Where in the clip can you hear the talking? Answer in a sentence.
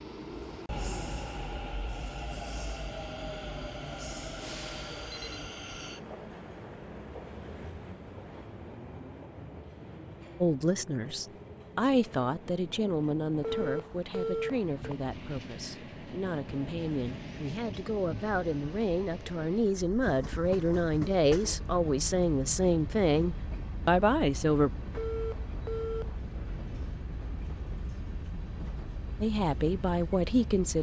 You can hear the talking from 10.4 to 24.7 s and from 29.2 to 30.7 s.